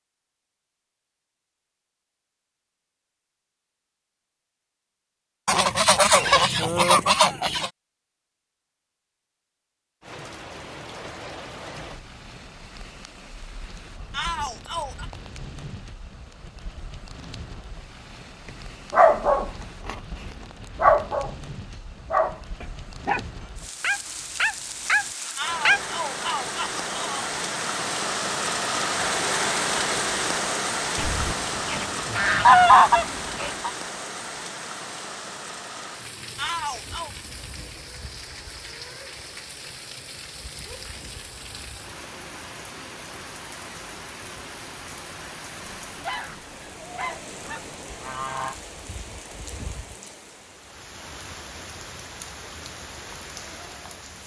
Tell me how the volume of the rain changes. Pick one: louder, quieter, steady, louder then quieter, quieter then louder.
louder then quieter.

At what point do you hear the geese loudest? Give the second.
33 s.